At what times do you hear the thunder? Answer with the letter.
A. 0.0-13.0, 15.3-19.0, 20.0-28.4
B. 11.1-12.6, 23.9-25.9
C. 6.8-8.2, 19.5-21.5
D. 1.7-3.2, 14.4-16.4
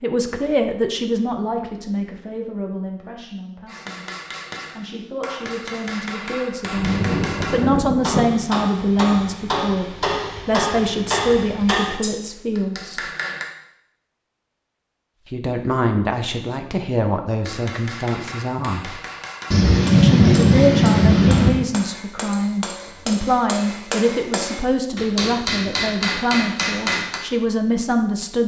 C.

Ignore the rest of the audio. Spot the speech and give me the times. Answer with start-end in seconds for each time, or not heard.
0.0-13.0, 15.3-19.0, 20.0-28.4.